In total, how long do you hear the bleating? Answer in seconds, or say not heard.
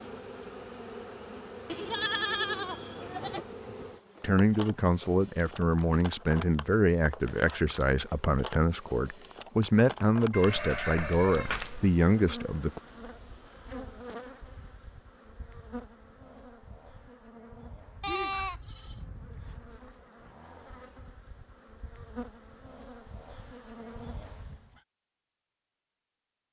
5 s.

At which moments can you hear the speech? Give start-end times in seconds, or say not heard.
4.2-12.8.